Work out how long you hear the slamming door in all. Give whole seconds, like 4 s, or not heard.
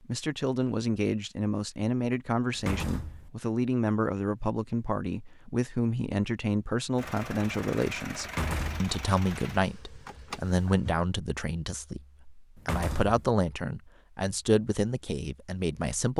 2 s.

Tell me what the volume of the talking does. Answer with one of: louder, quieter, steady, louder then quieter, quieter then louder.
steady.